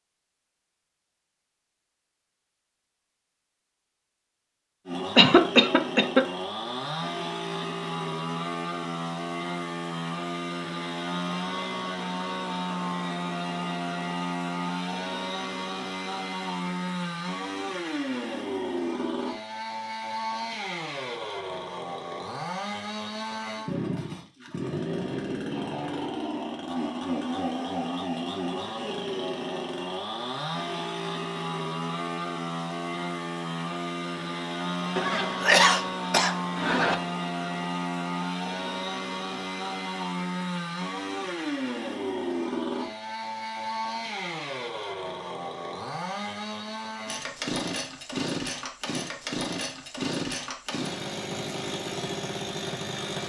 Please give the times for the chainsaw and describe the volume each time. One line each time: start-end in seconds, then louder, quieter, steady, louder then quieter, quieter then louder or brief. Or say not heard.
4.8-53.2 steady.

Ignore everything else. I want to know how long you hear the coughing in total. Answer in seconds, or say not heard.
3 s.